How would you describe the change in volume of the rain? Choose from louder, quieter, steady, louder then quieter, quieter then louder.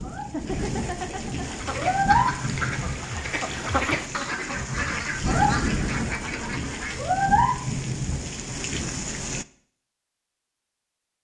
steady.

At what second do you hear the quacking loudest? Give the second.
4 s.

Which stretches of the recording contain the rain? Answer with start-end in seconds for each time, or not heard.
0.0-9.4.